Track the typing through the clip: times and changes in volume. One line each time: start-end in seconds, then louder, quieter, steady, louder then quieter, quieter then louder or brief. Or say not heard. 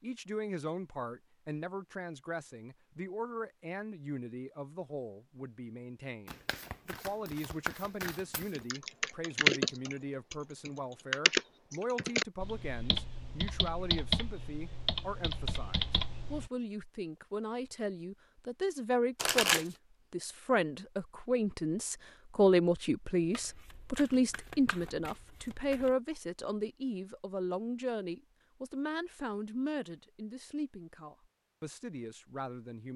8.6-16.5 quieter.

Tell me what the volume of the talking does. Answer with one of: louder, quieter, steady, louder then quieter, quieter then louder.
louder then quieter.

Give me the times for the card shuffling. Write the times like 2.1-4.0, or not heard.
6.2-8.6, 19.1-19.8, 23.3-25.9.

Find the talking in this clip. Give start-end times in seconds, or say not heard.
0.0-32.9.